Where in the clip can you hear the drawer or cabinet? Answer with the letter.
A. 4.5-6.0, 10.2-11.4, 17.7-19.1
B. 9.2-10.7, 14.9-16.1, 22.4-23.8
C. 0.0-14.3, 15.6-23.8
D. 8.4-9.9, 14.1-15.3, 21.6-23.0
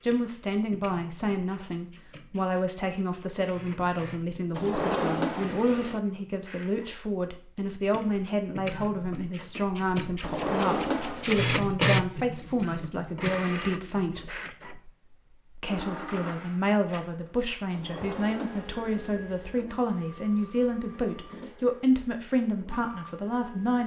A.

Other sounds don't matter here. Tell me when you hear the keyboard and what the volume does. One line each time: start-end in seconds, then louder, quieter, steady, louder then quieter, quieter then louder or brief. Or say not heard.
not heard.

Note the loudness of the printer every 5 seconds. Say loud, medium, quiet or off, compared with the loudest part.
quiet, quiet, loud, quiet, quiet.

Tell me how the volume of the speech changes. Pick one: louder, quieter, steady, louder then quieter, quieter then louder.
steady.